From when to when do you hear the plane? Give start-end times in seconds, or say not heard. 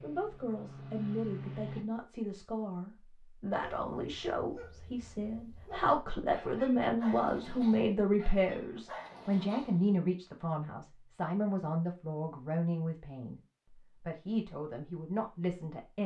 0.0-1.9.